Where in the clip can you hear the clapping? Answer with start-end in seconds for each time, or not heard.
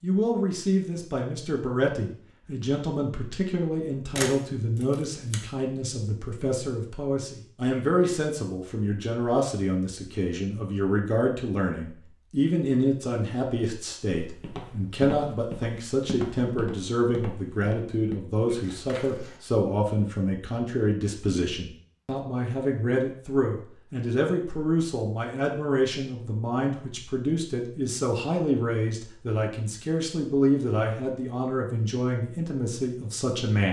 not heard.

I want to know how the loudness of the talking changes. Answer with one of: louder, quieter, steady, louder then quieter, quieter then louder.
steady.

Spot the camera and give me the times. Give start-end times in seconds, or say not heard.
4.2-5.3.